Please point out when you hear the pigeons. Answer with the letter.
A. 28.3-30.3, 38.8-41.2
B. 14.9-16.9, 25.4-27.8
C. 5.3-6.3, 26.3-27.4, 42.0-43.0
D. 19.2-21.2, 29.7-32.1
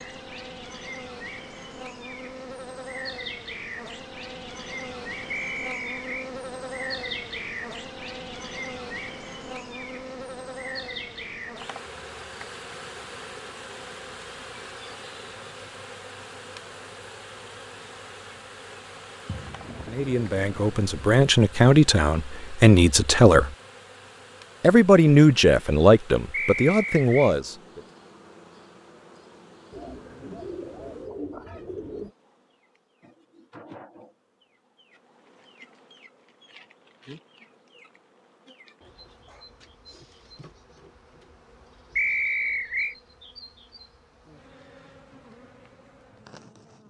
D.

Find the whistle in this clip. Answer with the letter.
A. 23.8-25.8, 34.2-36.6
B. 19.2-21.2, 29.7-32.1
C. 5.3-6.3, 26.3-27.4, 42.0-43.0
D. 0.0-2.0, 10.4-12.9
C.